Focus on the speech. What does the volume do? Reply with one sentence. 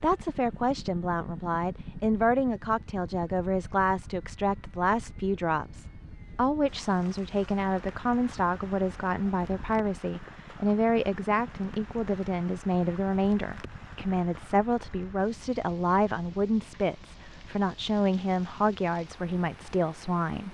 The loudness of the speech stays about the same.